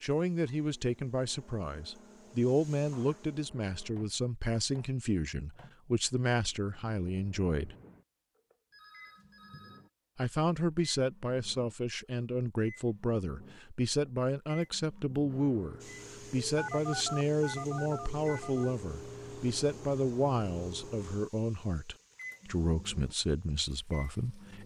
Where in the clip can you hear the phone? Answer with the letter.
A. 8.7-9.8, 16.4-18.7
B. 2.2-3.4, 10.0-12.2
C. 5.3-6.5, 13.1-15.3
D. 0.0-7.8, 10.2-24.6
A.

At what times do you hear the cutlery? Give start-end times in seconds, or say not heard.
not heard.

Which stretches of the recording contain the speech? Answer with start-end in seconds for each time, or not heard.
0.0-7.8, 10.2-24.6.